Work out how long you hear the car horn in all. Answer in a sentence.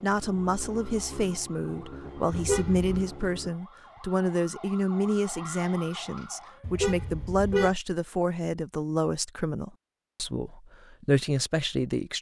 The car horn can be heard for 2 seconds in total.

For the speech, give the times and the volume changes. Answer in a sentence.
You can hear the speech from 0.0 to 12.1 s, at a steady volume.